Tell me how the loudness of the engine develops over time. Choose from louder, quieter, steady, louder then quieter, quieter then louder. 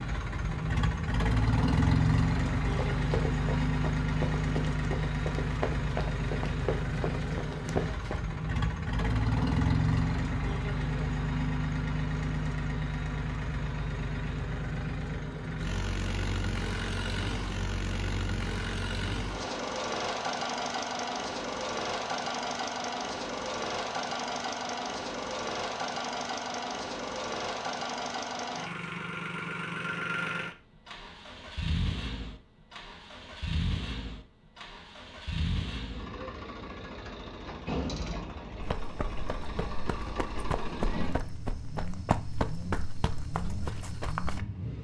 quieter.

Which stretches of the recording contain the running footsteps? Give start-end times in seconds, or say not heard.
2.6-8.2, 38.6-44.4.